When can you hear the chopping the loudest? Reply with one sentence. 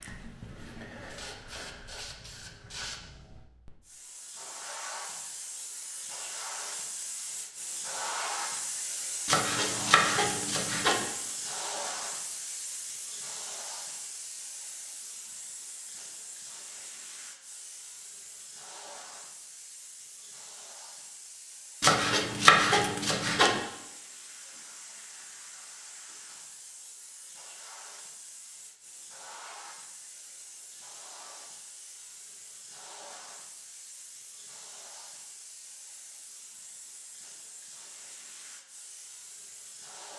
The loudest moment of the chopping is at 23 seconds.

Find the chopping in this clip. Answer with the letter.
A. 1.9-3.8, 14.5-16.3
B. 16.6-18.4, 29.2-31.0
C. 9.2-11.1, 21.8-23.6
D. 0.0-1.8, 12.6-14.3
C.